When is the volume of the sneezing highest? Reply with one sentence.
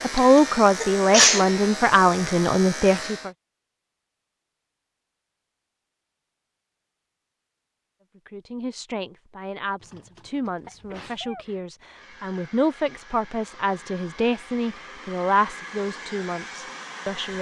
The loudest moment of the sneezing is at 1 second.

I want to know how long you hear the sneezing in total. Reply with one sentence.
The sneezing can be heard for 3 seconds in total.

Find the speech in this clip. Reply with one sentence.
You can hear the speech from 0.0 to 3.3 s and from 8.2 to 17.3 s.